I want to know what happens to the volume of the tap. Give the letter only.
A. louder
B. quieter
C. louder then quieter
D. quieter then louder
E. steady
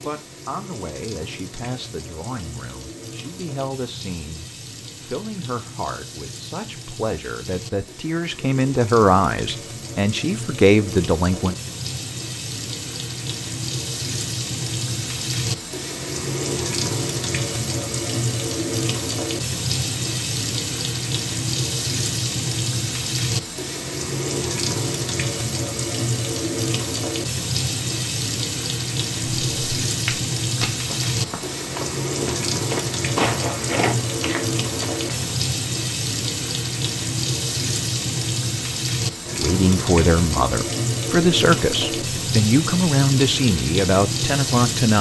A.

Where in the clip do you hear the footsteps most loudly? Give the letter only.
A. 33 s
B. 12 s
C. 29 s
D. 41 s
A.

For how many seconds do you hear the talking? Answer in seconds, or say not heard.
17 s.